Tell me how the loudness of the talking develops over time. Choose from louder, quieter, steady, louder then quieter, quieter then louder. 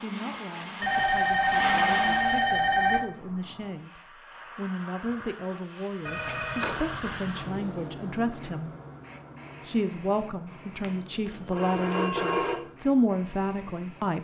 louder.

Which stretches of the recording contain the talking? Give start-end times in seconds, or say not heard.
0.0-8.8, 9.7-14.1.